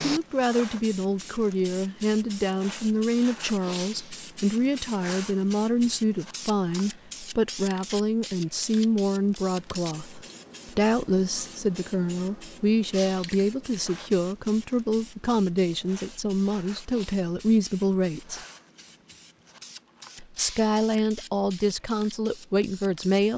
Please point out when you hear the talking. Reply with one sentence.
You can hear the talking from 0.0 to 18.4 s and from 20.2 to 23.3 s.